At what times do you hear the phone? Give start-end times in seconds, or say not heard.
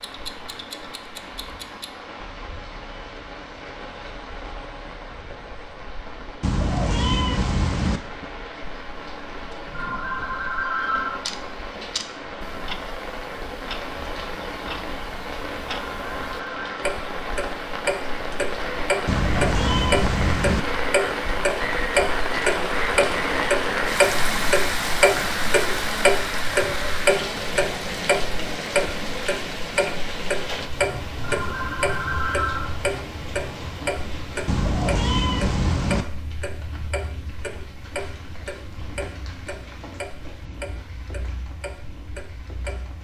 9.7-11.2, 15.8-16.9, 31.2-32.7.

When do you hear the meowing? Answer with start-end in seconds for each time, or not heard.
6.4-8.0, 19.1-20.6, 34.5-36.0.